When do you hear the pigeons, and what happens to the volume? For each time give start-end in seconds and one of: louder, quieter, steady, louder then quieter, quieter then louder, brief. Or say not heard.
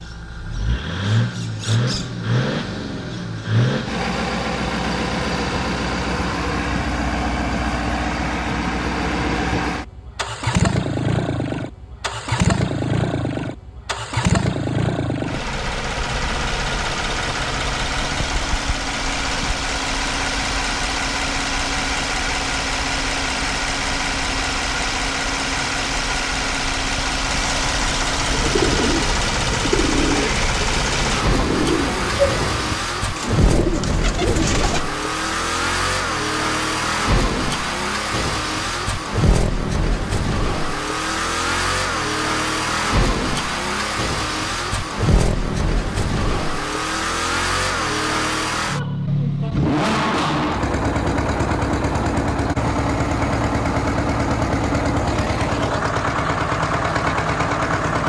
28.2-34.9 steady.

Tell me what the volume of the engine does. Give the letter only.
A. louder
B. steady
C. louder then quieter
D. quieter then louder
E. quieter
B.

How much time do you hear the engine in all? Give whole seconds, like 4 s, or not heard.
58 s.